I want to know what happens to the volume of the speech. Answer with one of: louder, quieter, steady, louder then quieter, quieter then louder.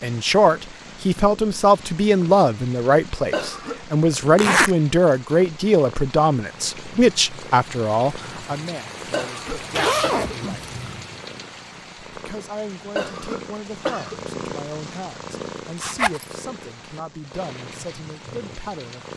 quieter.